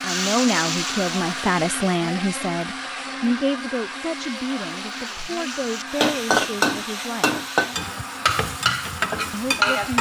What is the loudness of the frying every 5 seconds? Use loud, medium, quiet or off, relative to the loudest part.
medium, loud.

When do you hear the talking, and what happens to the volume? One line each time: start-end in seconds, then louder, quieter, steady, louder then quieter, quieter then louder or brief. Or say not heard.
0.0-7.3 quieter
9.3-9.9 brief.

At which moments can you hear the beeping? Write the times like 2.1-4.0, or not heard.
not heard.